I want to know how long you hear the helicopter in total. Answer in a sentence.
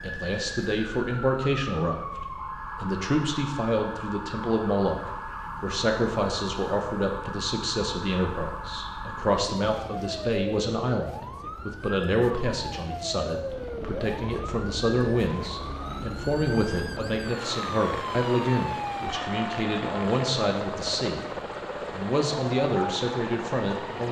The helicopter can be heard for 11 seconds in total.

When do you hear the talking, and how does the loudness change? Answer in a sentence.
The talking can be heard briefly from 0.0 to 2.0 s; and from 2.8 to 24.0 s, at a steady volume.